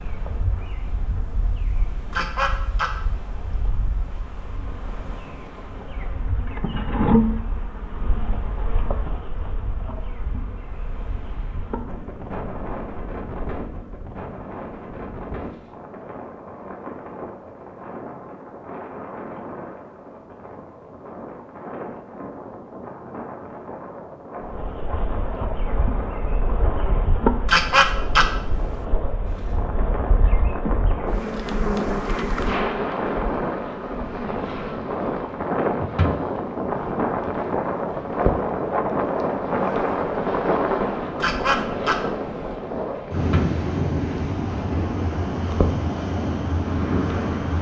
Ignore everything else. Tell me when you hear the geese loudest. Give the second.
28 s.